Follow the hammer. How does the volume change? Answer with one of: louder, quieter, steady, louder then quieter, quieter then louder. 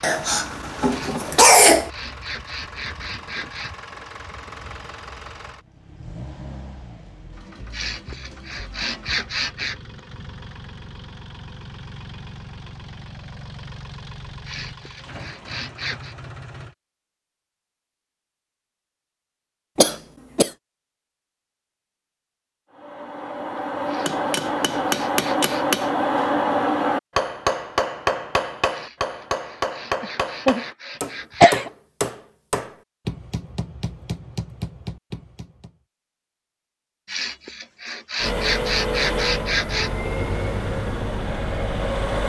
quieter.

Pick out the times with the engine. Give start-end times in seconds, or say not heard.
0.2-16.8, 38.1-42.2.